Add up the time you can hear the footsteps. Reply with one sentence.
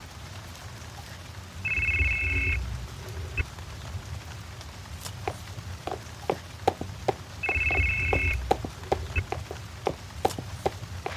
The footsteps can be heard for 6 seconds in total.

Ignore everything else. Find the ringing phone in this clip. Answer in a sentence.
You can hear the ringing phone from 1.6 to 3.5 s and from 7.4 to 9.2 s.